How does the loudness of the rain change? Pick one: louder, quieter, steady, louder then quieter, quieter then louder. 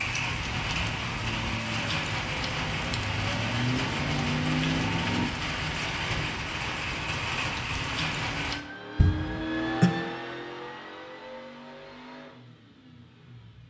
steady.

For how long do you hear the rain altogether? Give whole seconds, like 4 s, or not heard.
9 s.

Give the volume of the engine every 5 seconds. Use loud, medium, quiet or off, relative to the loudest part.
loud, loud, medium.